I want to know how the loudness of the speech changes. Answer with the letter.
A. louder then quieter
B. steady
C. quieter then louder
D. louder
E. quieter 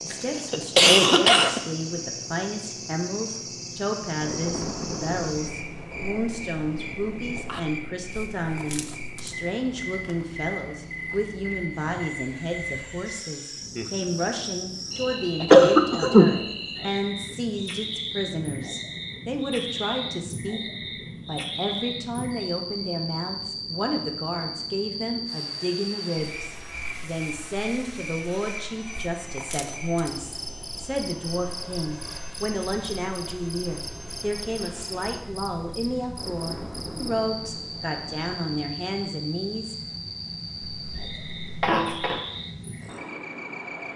B.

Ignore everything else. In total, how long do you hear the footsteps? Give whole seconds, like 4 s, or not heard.
not heard.